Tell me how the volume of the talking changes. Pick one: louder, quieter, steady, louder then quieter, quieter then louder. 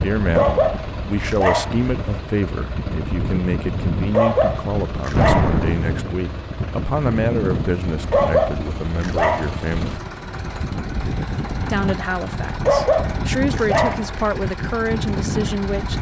steady.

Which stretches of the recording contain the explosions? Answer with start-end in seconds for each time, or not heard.
5.2-6.0.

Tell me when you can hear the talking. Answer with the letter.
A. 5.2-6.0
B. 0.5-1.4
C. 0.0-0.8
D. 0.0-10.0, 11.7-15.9
D.